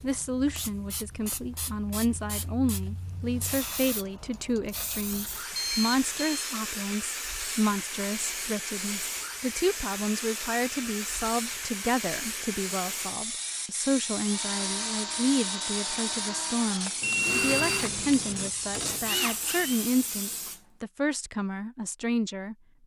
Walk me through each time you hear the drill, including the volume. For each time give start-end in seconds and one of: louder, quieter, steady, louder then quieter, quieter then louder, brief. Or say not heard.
14.1-19.9 steady.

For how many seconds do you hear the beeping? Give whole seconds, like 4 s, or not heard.
2 s.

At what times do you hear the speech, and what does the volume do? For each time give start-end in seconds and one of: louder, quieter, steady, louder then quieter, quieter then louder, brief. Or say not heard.
0.0-22.6 steady.